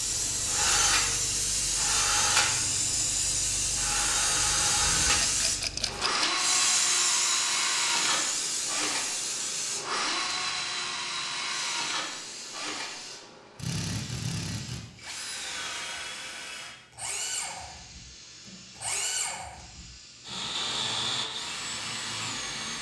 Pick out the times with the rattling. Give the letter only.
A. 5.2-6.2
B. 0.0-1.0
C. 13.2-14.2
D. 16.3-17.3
A.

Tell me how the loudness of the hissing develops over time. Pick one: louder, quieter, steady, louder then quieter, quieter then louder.
quieter.